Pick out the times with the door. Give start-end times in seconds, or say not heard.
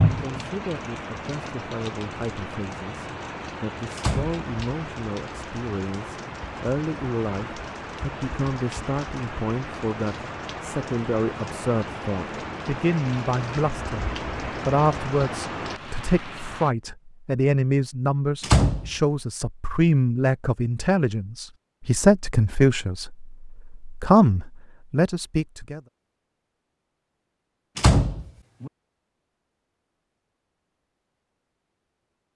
4.0-4.9, 18.4-18.9, 27.8-28.7.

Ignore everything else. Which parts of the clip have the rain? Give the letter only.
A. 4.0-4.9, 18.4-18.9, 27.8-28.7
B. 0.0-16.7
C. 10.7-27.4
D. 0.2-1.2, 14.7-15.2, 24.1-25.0
B.